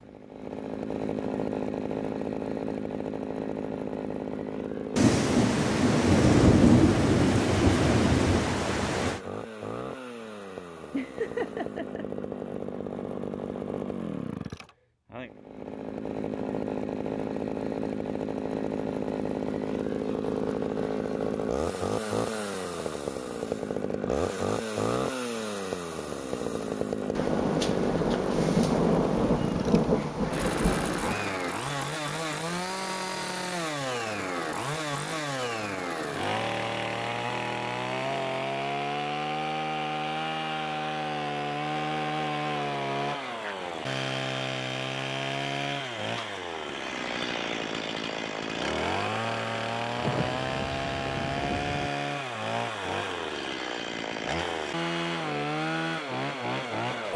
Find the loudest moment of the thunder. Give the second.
7 s.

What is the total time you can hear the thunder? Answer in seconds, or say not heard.
10 s.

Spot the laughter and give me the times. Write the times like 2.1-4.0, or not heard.
10.9-12.1.